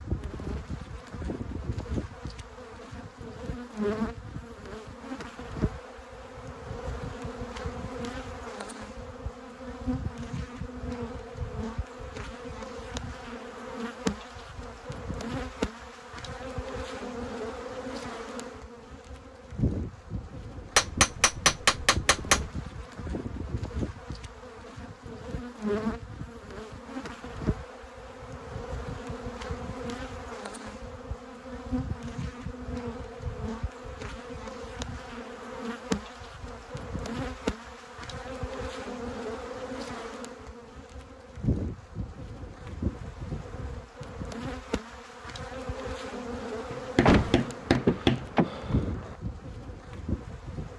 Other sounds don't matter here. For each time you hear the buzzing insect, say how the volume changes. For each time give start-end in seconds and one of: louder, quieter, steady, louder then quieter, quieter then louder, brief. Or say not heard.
0.0-50.7 steady.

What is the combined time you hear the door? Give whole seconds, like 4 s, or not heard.
2 s.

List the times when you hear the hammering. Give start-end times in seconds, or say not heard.
20.8-22.4, 46.7-48.2.